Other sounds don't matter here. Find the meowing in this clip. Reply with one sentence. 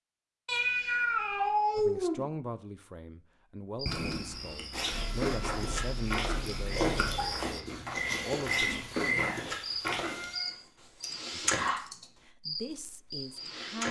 You can hear the meowing from 0.5 to 2.2 s, from 4.9 to 7.3 s and from 10.1 to 11.2 s.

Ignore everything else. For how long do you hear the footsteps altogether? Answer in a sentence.
The footsteps can be heard for 6 seconds in total.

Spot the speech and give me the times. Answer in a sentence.
The speech can be heard from 1.8 to 8.9 s and from 11.3 to 13.8 s.